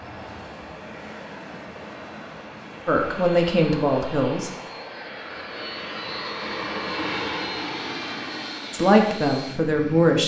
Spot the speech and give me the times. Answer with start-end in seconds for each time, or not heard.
2.9-4.5, 8.7-10.2.